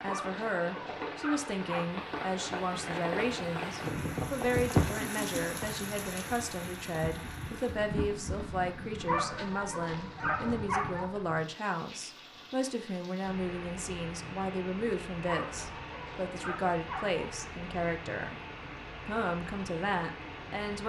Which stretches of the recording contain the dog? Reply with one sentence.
You can hear the dog from 0.1 to 1.9 s, from 9.1 to 11.1 s and from 15.2 to 17.2 s.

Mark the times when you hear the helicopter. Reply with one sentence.
The helicopter can't be heard in this clip.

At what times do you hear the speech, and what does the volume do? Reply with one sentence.
The speech can be heard from 0.0 to 18.4 s, at a steady volume; and briefly from 19.1 to 20.8 s.